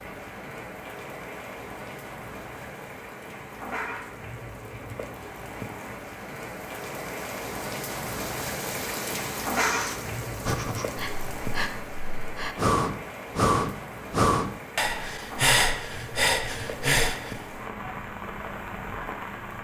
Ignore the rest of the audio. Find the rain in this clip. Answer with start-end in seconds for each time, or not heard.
0.0-19.5.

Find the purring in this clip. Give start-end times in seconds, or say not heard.
not heard.